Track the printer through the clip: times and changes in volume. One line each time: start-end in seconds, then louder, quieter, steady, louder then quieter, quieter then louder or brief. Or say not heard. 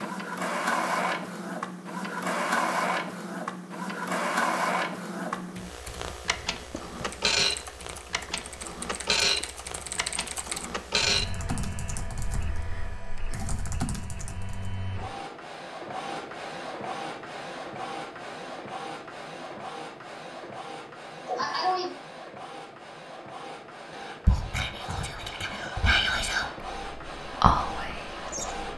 0.0-28.7 quieter.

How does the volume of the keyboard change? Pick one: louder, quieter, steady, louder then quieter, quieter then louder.
louder.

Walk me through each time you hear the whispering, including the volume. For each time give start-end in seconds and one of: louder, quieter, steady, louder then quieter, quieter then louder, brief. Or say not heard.
24.2-28.6 louder then quieter.